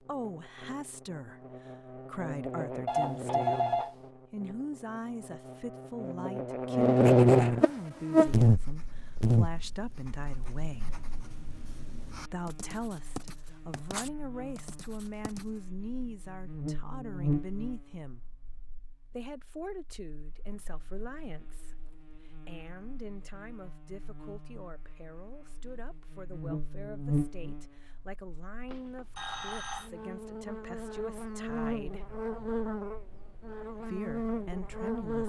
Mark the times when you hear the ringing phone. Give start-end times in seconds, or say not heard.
2.9-4.0, 28.7-29.9.